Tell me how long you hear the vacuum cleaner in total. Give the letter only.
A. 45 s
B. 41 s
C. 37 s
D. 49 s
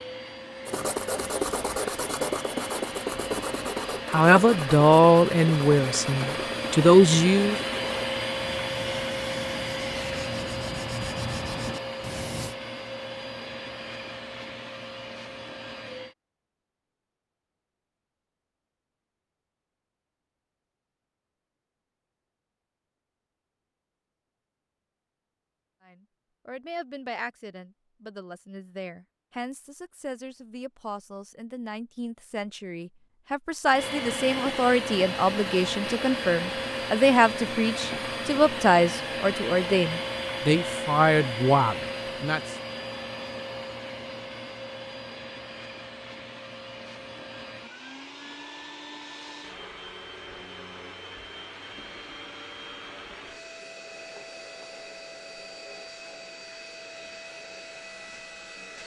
B.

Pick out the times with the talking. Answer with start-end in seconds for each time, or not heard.
4.1-7.5, 25.9-42.4.